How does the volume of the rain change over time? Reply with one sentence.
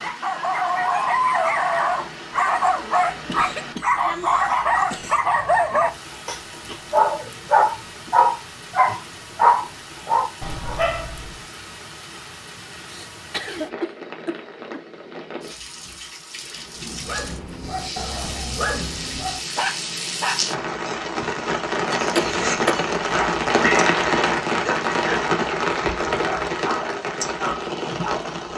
The volume of the rain goes up.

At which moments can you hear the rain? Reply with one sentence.
The rain can be heard from 0.0 to 28.5 s.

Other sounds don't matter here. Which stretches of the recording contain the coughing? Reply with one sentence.
You can hear the coughing from 3.2 to 5.2 s, from 12.8 to 14.8 s and from 21.9 to 22.9 s.